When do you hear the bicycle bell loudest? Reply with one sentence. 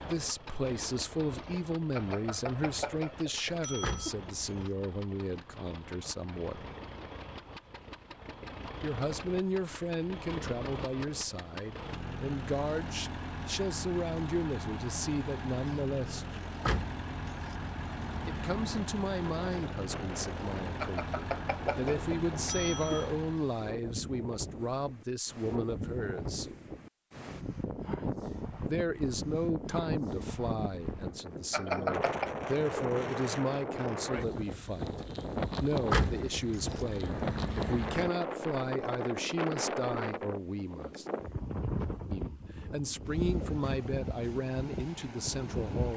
The volume of the bicycle bell peaks at 32 seconds.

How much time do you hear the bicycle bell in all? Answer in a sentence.
The bicycle bell can be heard for 5 seconds in total.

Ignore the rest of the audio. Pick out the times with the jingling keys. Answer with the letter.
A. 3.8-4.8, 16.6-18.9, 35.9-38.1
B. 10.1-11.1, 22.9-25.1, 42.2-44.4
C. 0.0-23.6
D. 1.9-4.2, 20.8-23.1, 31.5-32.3
A.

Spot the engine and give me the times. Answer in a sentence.
You can hear the engine from 0.0 to 23.6 s.